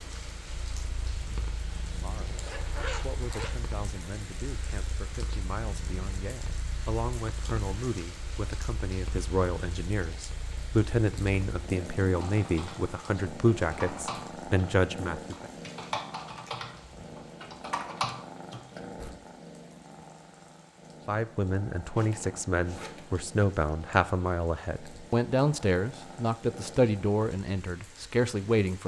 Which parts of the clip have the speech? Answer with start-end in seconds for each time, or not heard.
1.9-15.4, 21.1-28.8.